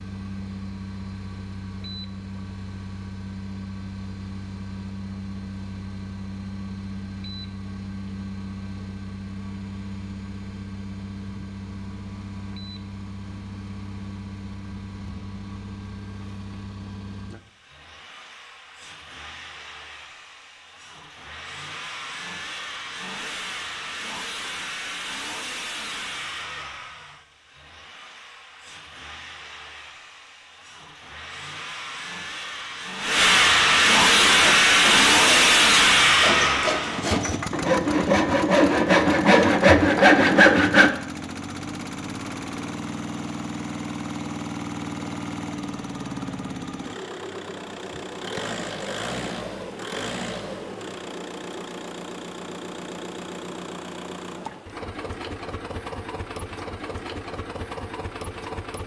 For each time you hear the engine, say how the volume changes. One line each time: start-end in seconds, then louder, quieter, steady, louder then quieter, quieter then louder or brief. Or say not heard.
0.0-58.8 louder then quieter.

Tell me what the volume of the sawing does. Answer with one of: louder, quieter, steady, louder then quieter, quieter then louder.
louder.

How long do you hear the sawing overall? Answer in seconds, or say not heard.
7 s.